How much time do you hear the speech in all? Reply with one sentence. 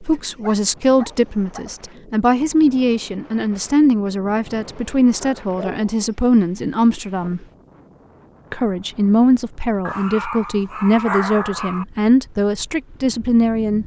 The speech can be heard for 13 seconds in total.